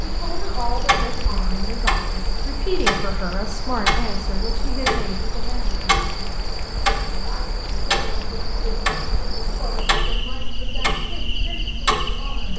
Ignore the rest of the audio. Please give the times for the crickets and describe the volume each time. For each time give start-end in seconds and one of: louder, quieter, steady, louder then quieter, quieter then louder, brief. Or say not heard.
0.0-12.5 steady.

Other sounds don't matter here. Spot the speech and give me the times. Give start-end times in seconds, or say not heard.
0.0-5.8, 7.1-12.5.